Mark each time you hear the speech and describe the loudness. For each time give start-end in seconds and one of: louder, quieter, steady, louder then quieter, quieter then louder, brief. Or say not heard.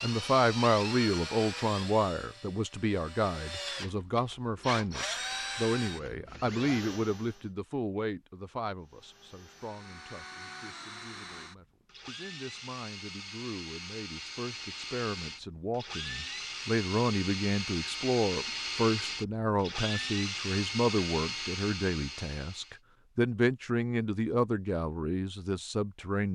0.0-26.2 quieter then louder.